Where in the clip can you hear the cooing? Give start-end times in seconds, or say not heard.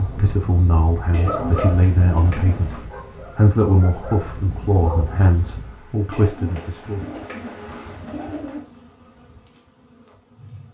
1.1-2.9, 6.1-8.7.